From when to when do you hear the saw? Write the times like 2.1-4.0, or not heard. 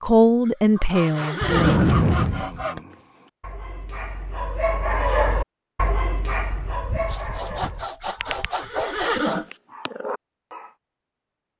0.9-2.8, 6.5-9.4.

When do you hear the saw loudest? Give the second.
2 s.